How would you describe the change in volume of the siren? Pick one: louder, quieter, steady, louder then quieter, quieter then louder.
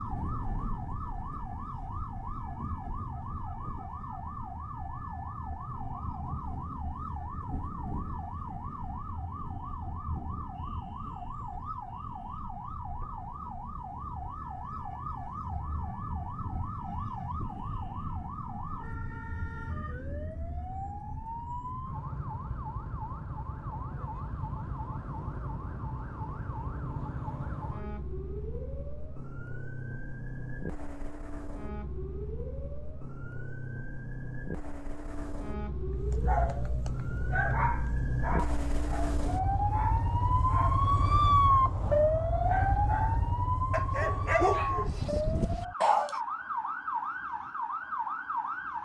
louder.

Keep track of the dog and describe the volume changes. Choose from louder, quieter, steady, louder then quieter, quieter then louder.
quieter then louder.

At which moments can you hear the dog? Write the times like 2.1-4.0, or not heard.
35.9-46.2.